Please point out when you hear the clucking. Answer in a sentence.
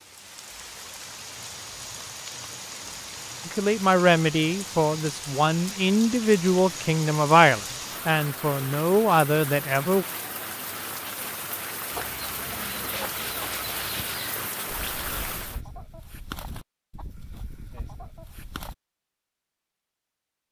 The clucking can be heard from 11.9 to 18.8 s.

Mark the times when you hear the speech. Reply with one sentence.
The speech can be heard from 3.5 to 10.1 s.